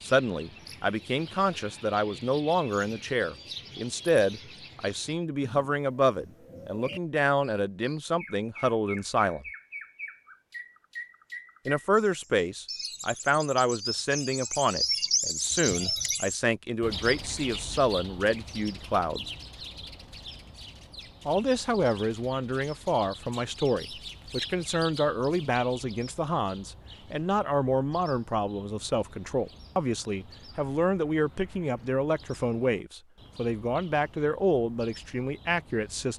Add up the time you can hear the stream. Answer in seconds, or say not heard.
not heard.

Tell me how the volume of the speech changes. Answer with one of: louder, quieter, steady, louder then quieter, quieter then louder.
steady.